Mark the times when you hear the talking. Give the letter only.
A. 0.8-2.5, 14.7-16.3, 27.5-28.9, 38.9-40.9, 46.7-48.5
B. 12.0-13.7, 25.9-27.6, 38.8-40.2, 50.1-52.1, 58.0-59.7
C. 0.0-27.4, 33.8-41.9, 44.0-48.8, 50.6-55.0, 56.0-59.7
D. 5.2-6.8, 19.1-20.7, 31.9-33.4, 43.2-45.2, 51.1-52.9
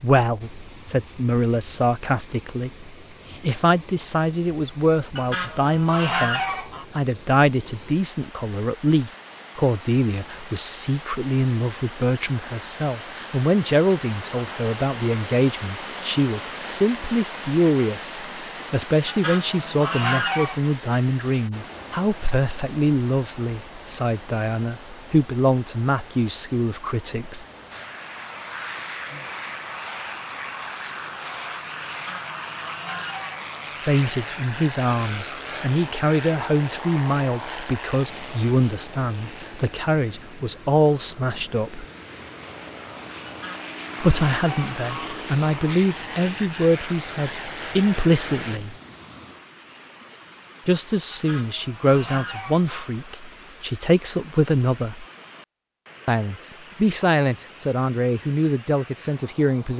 C.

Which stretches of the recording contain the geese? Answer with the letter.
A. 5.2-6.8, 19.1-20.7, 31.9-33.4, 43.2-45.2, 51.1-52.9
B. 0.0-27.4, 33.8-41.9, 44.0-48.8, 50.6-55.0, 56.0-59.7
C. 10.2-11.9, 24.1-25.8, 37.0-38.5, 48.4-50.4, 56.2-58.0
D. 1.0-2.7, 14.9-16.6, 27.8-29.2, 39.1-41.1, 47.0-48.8
A.